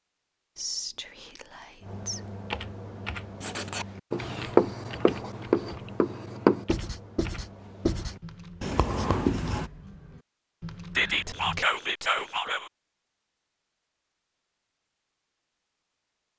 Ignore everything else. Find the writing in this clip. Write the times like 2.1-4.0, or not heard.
3.4-9.7.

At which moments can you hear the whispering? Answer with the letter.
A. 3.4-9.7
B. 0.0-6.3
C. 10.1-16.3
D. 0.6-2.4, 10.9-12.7
D.